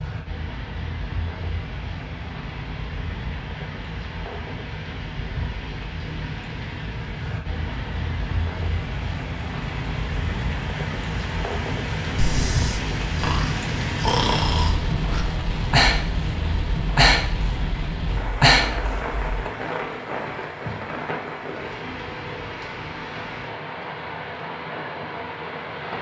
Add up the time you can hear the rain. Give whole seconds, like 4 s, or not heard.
26 s.